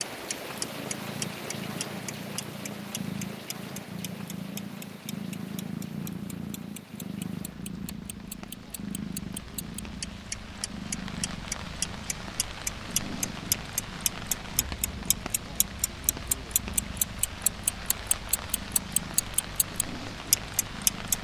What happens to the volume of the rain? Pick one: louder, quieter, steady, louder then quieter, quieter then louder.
quieter then louder.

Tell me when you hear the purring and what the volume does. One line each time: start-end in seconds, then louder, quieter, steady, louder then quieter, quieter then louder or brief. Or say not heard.
0.2-21.2 quieter.